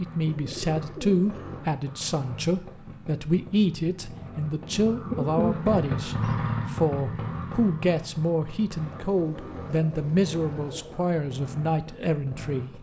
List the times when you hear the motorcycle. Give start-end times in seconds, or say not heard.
0.0-12.7.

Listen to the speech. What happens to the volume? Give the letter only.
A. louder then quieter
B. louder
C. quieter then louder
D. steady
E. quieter
D.